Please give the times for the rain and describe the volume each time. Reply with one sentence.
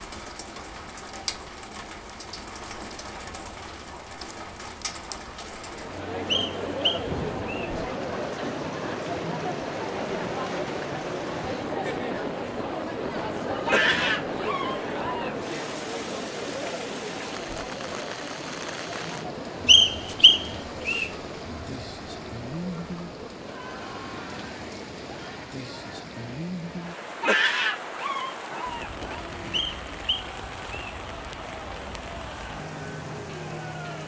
The rain can be heard from 0.0 to 34.0 s, at a steady volume.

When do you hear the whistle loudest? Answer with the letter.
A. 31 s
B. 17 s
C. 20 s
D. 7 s
C.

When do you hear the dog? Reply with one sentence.
The dog can be heard from 13.7 to 15.3 s and from 27.2 to 29.2 s.